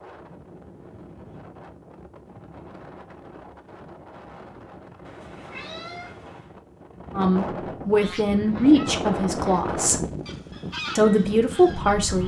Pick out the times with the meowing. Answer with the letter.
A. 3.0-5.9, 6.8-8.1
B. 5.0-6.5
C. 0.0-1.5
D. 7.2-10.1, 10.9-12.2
B.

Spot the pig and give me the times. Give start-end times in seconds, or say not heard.
not heard.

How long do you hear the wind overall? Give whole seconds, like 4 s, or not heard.
12 s.